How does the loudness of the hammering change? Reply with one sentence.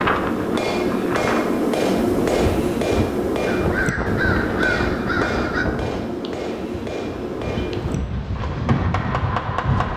The loudness of the hammering goes down.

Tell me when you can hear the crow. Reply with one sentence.
You can hear the crow from 3.5 to 5.7 s.